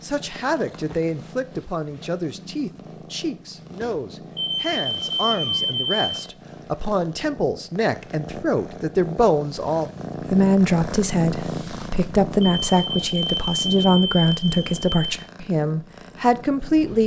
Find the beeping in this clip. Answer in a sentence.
The beeping can be heard from 4.3 to 6.2 s and from 12.4 to 15.2 s.